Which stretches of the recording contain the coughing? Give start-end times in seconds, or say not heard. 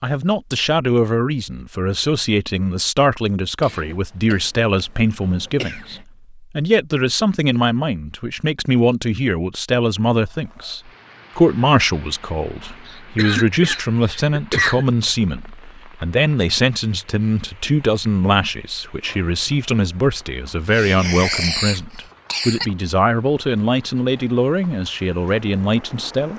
3.6-6.0, 12.8-14.8, 20.7-22.6.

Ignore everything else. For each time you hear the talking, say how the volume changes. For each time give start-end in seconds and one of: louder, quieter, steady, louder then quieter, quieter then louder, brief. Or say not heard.
0.0-26.3 steady.